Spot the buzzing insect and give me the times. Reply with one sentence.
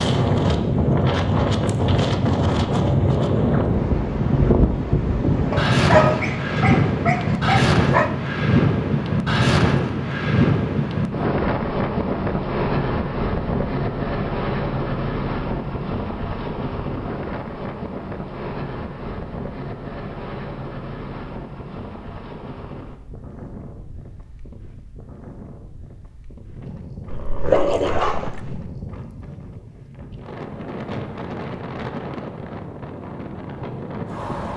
The buzzing insect can't be heard in this clip.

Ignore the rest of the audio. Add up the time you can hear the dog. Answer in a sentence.
You can hear the dog for 4 seconds altogether.